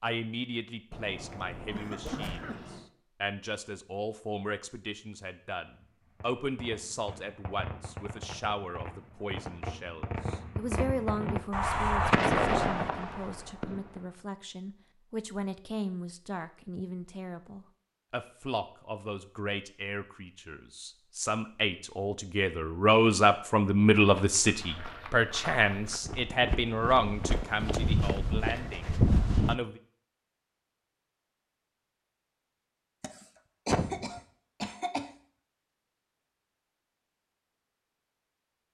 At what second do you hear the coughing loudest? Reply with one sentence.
The volume of the coughing peaks at 34 seconds.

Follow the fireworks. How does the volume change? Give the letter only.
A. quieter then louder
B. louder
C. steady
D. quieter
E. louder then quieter
B.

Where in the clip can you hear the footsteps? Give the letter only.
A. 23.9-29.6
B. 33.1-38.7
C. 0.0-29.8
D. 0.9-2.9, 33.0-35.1
A.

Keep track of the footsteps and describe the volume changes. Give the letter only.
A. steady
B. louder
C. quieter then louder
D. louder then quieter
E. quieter
B.